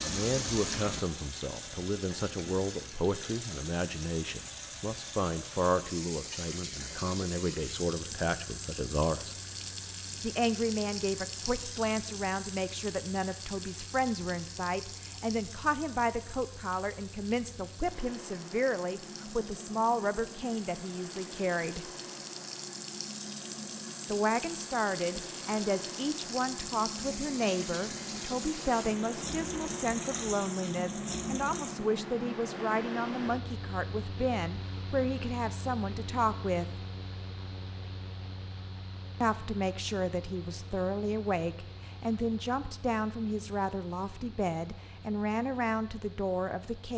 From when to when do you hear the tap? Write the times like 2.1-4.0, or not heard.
0.0-31.8.